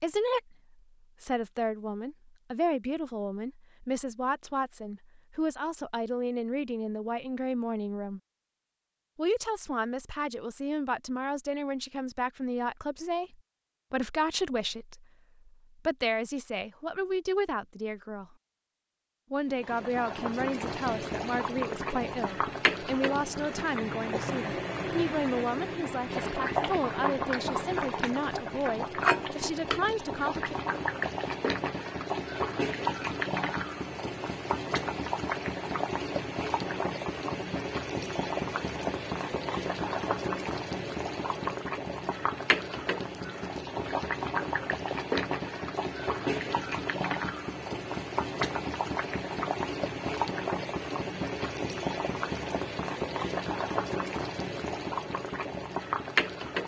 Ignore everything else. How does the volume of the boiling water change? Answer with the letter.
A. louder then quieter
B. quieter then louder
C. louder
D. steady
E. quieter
D.